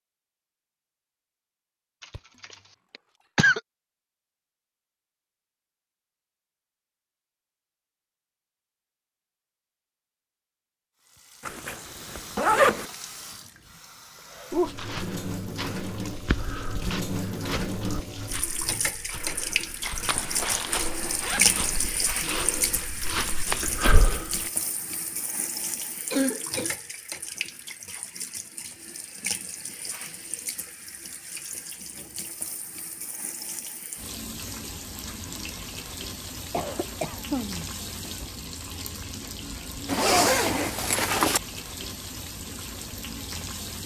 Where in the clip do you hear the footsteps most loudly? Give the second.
24 s.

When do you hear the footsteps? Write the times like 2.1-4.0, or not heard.
14.5-24.5.